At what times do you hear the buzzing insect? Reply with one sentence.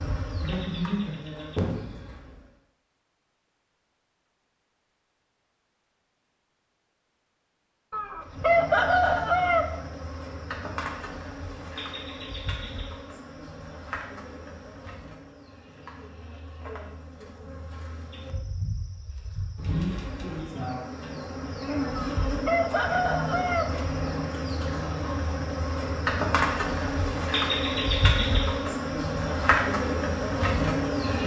You can hear the buzzing insect from 0.0 to 2.5 s and from 8.2 to 31.2 s.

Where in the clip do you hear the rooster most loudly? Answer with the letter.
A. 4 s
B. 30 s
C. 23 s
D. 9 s
D.